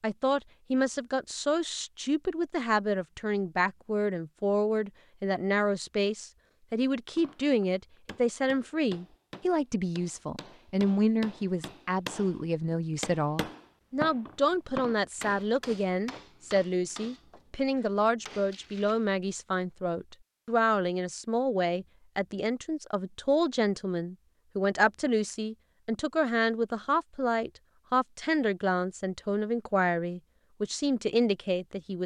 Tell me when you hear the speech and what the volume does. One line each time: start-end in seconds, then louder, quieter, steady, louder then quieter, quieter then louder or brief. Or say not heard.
0.0-32.0 steady.